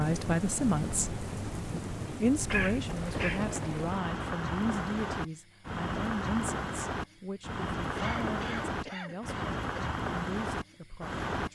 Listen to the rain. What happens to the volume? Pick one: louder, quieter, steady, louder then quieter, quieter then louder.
steady.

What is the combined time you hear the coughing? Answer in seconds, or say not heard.
3 s.